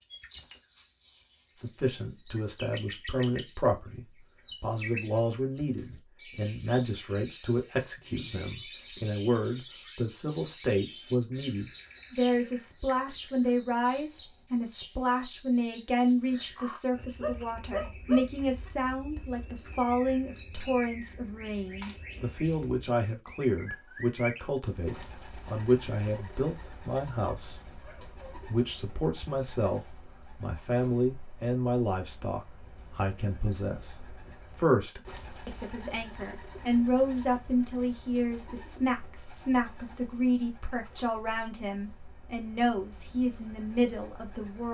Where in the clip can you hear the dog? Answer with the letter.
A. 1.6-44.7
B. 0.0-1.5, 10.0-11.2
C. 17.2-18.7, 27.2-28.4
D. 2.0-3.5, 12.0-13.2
C.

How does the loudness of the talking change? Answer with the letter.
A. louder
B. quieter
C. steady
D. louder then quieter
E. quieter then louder
C.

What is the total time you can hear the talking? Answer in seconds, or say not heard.
43 s.